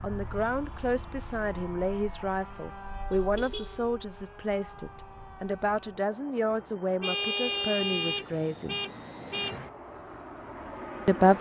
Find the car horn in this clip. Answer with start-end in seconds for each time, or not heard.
3.1-3.9, 7.0-9.6.